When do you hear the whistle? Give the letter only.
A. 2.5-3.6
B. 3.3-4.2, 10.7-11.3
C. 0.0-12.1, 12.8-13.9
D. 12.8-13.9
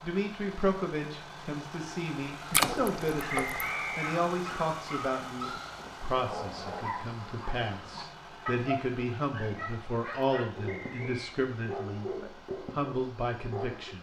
B.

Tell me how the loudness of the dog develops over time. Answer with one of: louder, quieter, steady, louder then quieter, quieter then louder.
steady.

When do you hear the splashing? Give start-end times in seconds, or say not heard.
2.5-3.6.